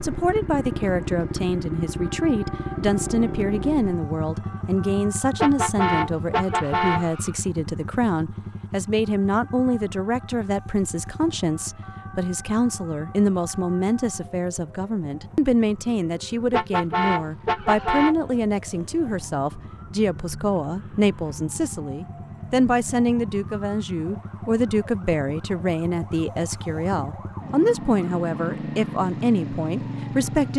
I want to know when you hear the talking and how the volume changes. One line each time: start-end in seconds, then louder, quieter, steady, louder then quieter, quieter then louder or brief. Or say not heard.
0.0-30.5 steady.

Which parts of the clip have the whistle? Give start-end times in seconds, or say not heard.
not heard.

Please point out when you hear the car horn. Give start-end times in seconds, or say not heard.
5.3-7.3, 16.5-18.1.